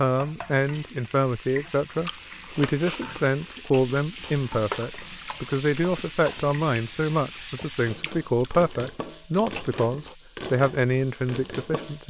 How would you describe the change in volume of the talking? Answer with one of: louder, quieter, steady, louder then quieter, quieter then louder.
steady.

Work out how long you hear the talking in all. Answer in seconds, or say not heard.
12 s.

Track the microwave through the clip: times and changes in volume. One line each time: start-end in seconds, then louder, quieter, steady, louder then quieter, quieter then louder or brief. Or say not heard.
not heard.